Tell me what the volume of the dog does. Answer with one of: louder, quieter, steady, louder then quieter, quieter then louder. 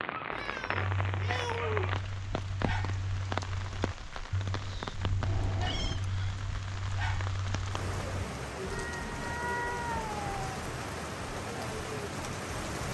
steady.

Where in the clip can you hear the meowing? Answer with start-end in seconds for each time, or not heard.
0.3-1.9, 5.2-6.0, 8.7-10.4.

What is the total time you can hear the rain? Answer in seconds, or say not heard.
13 s.